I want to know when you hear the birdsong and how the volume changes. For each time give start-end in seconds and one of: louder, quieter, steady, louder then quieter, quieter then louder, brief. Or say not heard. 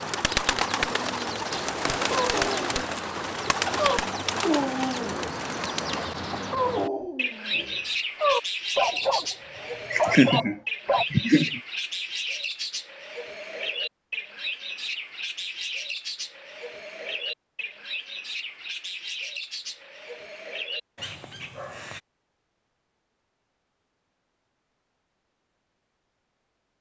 0.0-22.0 quieter.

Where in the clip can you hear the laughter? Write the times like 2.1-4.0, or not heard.
9.9-11.6.